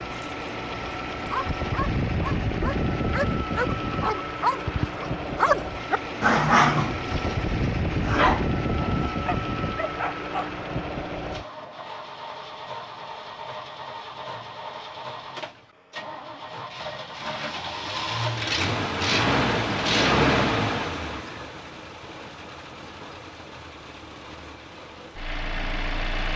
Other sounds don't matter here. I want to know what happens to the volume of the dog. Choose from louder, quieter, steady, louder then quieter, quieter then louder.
louder then quieter.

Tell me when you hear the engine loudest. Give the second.
20 s.